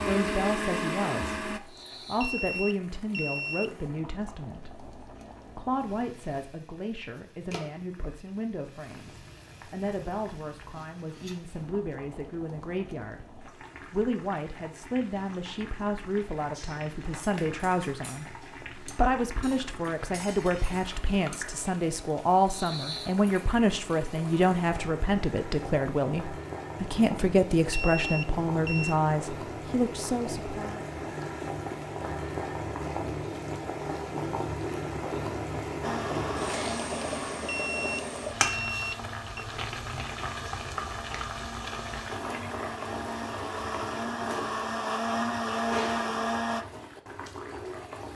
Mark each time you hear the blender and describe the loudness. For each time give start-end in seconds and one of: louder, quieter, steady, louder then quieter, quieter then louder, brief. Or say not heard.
0.0-1.6 brief
35.8-46.6 quieter then louder.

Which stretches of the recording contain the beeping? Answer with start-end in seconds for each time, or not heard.
2.1-3.7, 27.7-28.9, 37.5-39.5.